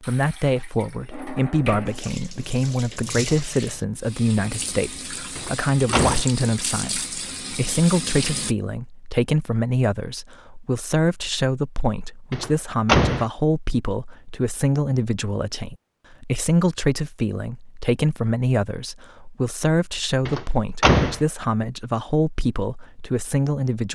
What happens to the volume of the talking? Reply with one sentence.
The volume of the talking stays about the same.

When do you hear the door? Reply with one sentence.
You can hear the door from 5.3 to 6.3 s, from 12.3 to 13.2 s and from 20.2 to 21.2 s.